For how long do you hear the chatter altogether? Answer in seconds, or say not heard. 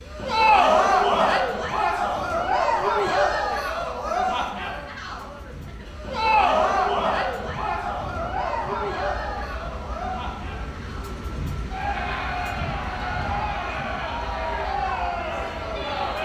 16 s.